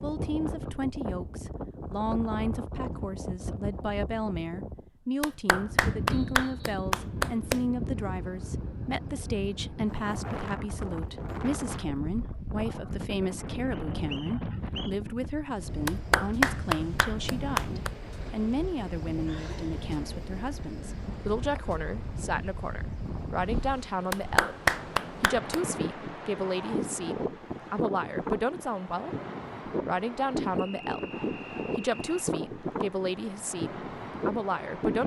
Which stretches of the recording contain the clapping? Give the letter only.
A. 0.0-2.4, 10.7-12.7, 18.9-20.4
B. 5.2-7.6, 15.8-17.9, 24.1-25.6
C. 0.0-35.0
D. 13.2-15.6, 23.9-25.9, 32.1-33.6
B.